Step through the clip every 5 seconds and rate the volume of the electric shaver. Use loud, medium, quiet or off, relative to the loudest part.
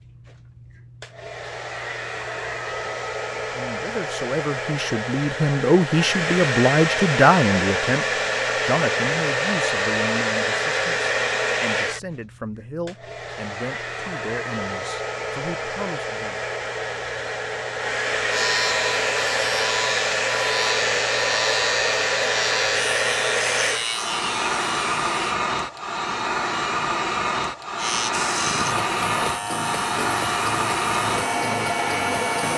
off, off, off, loud, loud, loud, loud.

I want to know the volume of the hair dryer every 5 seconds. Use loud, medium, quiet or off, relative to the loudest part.
medium, loud, loud, loud, loud, loud, loud.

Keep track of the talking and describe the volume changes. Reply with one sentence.
The loudness of the talking goes up, then down.